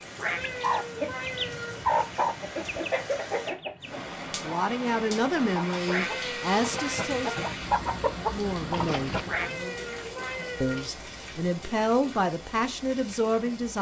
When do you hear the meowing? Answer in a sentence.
You can hear the meowing from 0.1 to 1.8 s, from 5.8 to 7.5 s and from 9.2 to 10.9 s.